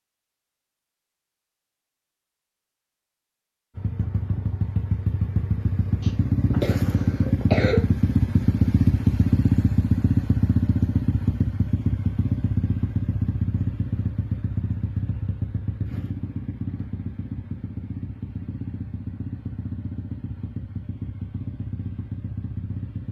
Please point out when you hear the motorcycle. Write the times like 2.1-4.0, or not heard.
3.8-23.0.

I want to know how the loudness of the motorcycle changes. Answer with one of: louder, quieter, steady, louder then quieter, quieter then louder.
quieter.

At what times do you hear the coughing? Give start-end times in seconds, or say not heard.
6.0-7.8.